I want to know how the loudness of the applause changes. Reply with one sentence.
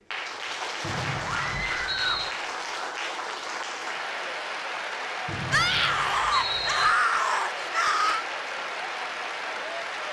The loudness of the applause stays about the same.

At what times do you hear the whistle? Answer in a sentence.
The whistle can be heard from 0.8 to 2.4 s and from 5.2 to 6.9 s.